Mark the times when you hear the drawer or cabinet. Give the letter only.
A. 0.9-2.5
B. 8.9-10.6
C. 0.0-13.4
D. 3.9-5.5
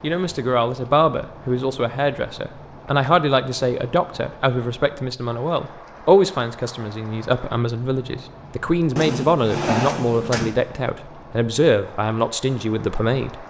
B.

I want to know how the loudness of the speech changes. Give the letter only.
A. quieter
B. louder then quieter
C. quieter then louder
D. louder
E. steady
E.